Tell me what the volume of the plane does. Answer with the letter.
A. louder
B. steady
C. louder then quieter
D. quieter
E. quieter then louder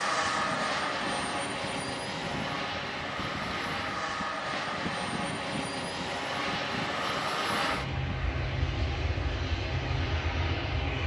B.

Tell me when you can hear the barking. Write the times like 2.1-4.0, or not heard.
not heard.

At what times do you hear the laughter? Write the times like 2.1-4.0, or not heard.
not heard.